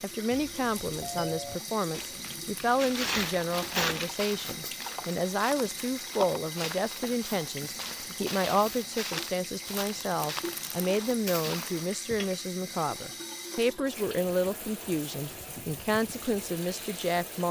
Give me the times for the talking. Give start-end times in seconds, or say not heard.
0.0-17.4.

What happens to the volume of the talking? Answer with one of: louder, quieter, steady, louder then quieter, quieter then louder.
steady.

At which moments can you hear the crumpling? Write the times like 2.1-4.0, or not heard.
1.9-4.2, 9.7-11.1.